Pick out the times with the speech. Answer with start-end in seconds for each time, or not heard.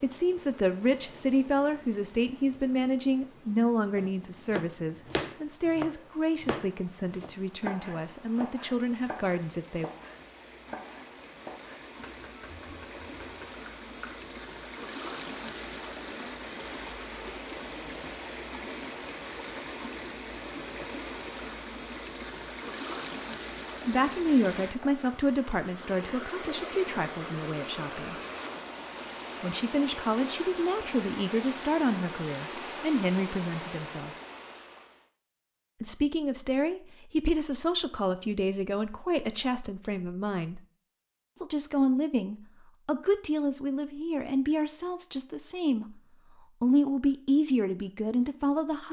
0.0-9.9, 23.9-28.1, 29.4-34.1, 35.8-40.6, 41.4-48.8.